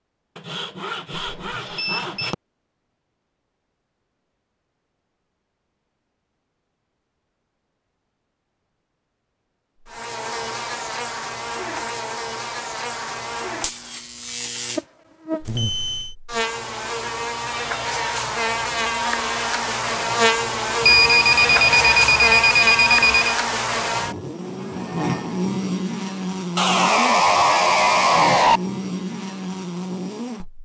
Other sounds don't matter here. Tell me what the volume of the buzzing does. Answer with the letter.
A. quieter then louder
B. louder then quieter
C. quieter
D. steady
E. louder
B.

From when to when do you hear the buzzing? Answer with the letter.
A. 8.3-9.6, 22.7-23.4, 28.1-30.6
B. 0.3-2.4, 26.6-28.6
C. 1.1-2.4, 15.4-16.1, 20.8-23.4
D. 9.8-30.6
D.